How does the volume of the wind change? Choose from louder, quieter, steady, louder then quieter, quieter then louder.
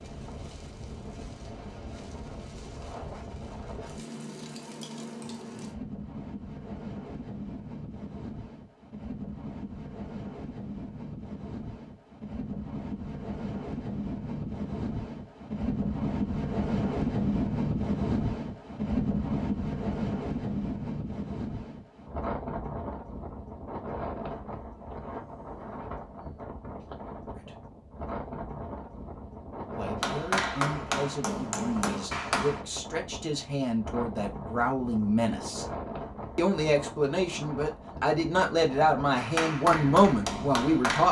louder then quieter.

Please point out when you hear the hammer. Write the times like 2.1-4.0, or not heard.
30.0-32.6, 39.1-41.0.